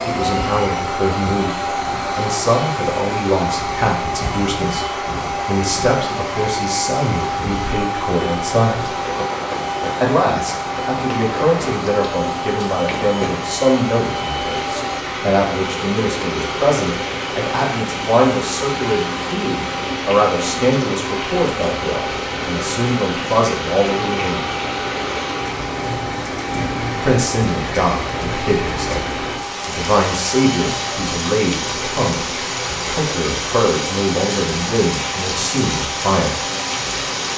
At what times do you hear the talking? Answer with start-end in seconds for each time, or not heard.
0.1-8.9, 10.0-24.6, 27.0-36.4.